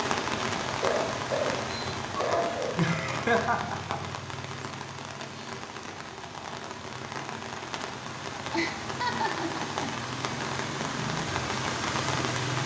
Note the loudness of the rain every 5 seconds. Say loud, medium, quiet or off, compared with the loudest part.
loud, medium, loud.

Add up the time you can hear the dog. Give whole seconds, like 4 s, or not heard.
2 s.